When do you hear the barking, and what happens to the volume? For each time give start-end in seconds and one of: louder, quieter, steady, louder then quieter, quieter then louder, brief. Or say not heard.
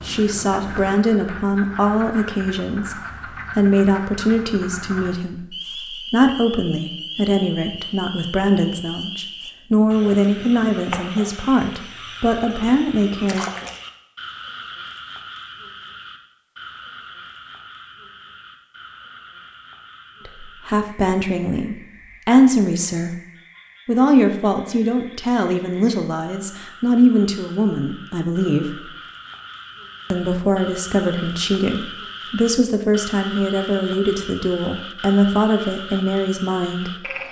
not heard.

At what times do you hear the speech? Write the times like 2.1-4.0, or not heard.
0.0-13.4, 20.2-23.1, 23.9-28.9, 30.1-37.1.